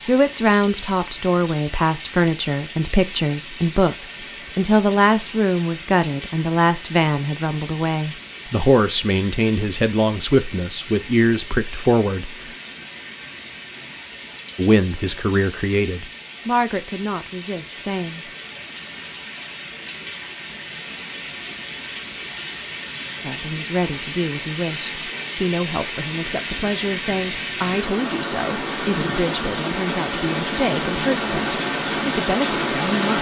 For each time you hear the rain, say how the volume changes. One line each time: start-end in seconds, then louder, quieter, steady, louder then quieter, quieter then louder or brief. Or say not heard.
0.0-33.1 louder.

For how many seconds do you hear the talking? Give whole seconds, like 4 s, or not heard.
26 s.